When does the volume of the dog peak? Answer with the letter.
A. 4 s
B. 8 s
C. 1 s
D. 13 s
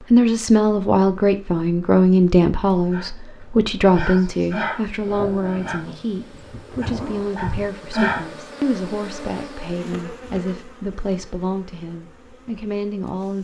B.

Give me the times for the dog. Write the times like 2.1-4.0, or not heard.
2.7-8.2.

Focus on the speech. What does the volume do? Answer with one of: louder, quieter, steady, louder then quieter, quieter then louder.
quieter.